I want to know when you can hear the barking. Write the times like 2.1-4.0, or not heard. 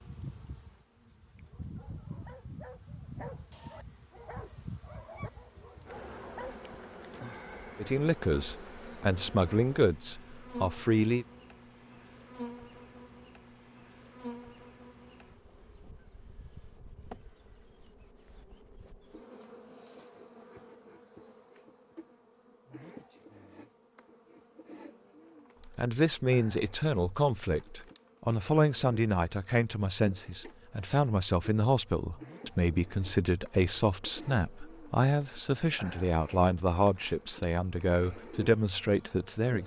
1.4-6.6.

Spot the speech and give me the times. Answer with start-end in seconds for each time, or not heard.
7.8-11.2, 25.6-39.6.